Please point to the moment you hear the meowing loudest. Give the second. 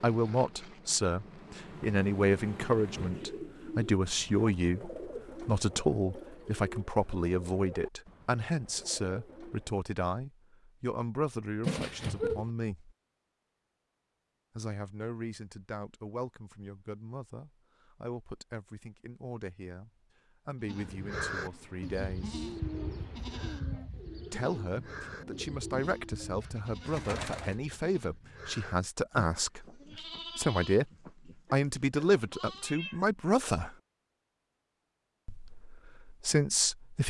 12 s.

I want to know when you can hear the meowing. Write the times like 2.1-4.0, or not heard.
11.6-12.4, 31.4-33.1.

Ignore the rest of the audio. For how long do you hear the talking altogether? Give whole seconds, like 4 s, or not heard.
32 s.